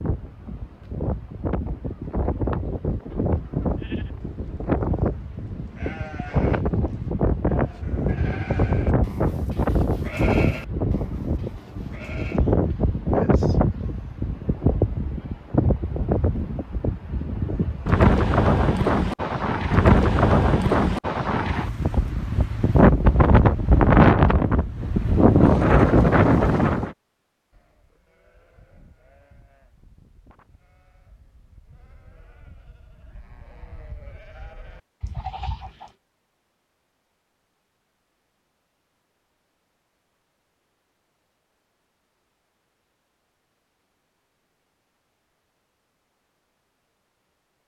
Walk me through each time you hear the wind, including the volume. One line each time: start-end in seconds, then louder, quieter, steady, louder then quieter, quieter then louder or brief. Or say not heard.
0.0-26.9 louder.